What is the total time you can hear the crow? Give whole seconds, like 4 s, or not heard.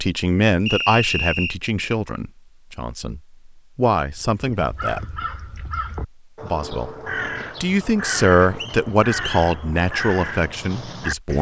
7 s.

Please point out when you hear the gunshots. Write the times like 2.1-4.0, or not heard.
not heard.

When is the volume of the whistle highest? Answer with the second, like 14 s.
1 s.